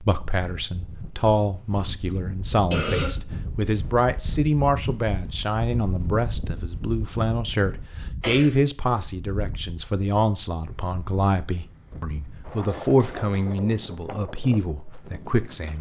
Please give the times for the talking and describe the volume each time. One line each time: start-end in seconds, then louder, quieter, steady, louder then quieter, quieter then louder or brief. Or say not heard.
0.0-15.7 steady.